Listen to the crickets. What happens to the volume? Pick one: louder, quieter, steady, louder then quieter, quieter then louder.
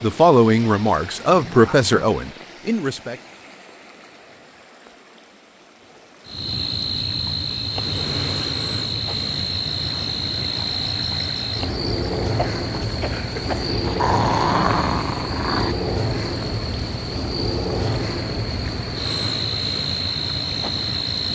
steady.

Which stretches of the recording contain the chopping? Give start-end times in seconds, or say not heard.
not heard.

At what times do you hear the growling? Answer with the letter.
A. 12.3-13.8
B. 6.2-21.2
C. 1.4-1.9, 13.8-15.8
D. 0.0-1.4
C.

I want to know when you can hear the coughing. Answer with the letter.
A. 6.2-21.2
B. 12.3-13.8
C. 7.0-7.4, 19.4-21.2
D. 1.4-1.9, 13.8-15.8
B.